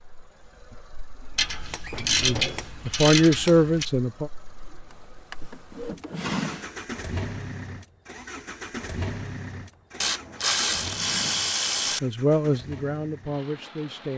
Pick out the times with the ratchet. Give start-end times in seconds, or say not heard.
1.4-3.9, 10.0-12.0.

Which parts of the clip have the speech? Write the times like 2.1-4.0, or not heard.
2.2-4.3, 12.0-14.1.